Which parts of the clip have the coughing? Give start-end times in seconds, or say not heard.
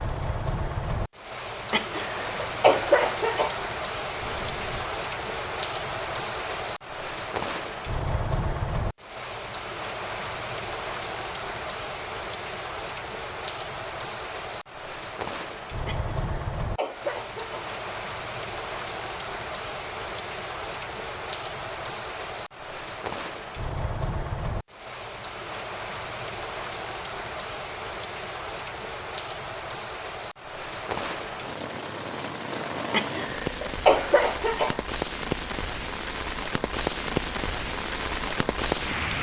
1.7-3.6, 15.8-17.8, 32.9-34.8.